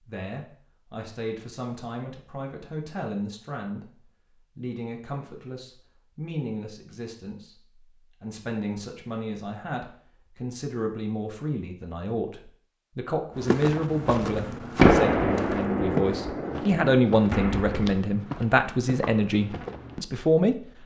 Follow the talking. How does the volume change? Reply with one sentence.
The volume of the talking goes up.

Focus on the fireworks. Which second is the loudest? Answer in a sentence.
The volume of the fireworks peaks at 15 seconds.